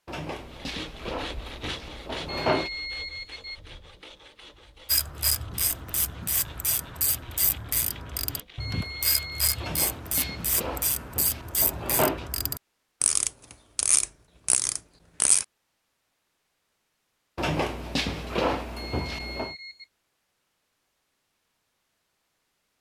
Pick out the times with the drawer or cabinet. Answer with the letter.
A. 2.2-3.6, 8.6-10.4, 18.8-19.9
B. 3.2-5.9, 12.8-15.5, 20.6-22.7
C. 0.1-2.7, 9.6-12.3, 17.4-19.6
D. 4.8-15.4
C.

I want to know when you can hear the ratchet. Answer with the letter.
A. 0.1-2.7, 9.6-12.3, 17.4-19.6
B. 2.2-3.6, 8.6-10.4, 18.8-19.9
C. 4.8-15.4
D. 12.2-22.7
C.